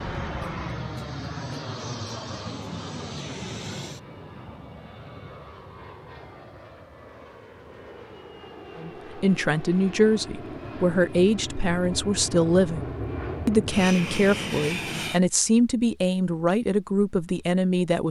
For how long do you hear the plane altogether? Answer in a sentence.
The plane can be heard for 15 seconds in total.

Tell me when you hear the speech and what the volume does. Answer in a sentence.
The speech can be heard from 8.8 to 18.0 s, at a steady volume.